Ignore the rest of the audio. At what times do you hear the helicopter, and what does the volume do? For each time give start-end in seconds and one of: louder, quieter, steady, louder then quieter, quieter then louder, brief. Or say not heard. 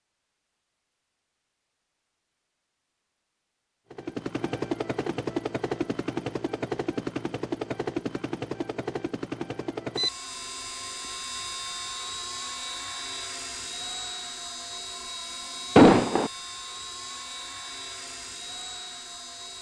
3.9-19.5 quieter.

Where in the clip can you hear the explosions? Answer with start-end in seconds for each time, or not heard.
15.8-16.3.